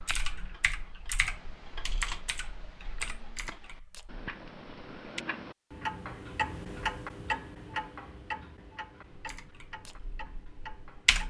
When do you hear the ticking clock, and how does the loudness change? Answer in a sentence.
You can hear the ticking clock from 0.0 to 11.2 s, getting louder then quieter.